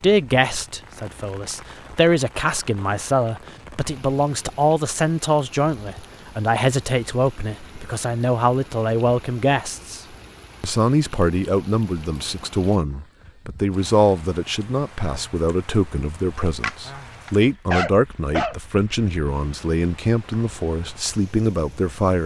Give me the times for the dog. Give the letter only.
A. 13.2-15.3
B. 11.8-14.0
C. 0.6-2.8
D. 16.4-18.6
D.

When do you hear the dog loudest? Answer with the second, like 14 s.
18 s.